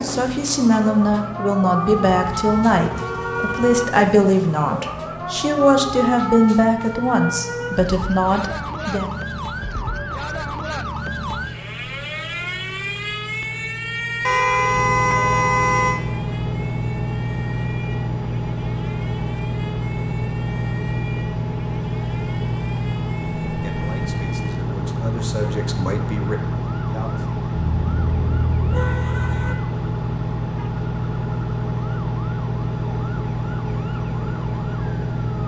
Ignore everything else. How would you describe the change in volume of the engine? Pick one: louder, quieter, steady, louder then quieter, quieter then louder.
louder.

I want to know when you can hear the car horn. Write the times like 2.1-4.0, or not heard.
1.9-3.9, 14.2-16.0, 27.6-29.6.